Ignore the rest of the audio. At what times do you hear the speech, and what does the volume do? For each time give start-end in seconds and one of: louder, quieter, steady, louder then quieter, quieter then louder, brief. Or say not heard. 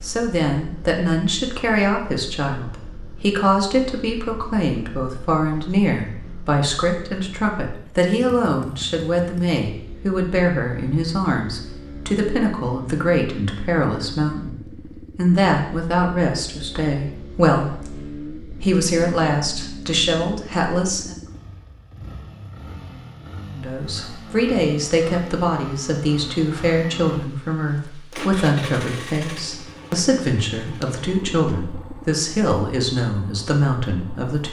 0.0-21.1 steady
23.5-34.4 steady.